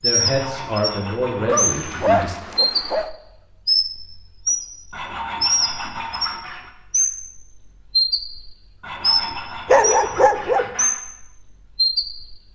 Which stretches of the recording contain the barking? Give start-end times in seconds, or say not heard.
1.4-3.1, 9.7-10.7.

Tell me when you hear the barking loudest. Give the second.
10 s.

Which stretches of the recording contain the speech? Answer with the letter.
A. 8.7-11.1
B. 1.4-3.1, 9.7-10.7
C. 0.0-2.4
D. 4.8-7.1
C.